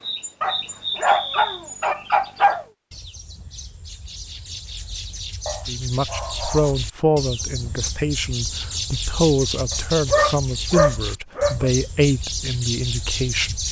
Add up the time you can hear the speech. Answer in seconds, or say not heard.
8 s.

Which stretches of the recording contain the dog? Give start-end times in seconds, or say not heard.
0.4-2.6, 5.5-6.7, 9.7-11.7.